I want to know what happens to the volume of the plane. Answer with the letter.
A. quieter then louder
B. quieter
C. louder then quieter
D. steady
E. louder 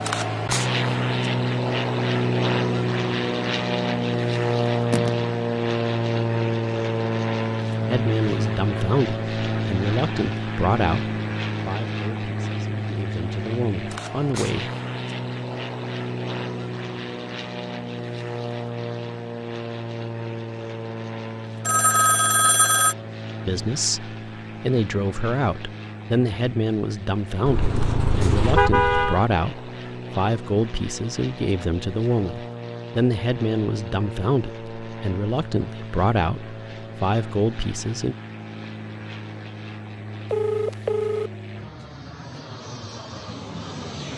B.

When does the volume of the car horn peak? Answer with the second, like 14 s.
29 s.